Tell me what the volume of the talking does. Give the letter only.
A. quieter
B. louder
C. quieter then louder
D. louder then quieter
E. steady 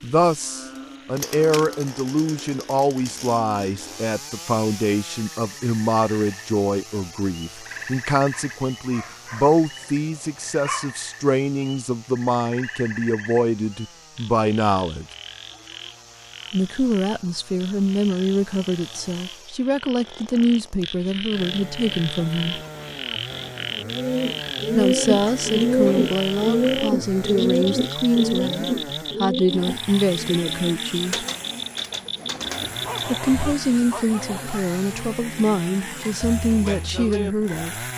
E.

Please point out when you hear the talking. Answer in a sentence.
You can hear the talking from 0.0 to 15.1 s, from 16.5 to 22.6 s, from 24.7 to 31.2 s and from 33.0 to 37.9 s.